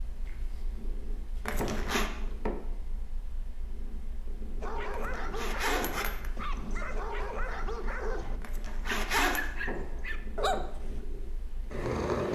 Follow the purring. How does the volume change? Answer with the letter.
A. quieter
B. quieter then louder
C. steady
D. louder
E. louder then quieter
D.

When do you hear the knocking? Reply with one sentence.
You can hear the knocking from 1.6 to 2.5 s, from 5.8 to 6.4 s and from 9.7 to 10.7 s.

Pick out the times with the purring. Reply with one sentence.
You can hear the purring from 0.0 to 12.3 s.